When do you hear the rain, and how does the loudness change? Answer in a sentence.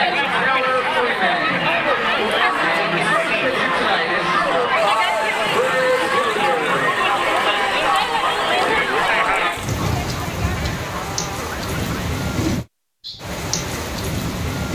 The rain can be heard from 4.8 to 14.7 s, getting louder.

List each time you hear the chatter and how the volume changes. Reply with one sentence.
You can hear the chatter from 0.0 to 12.1 s, getting quieter.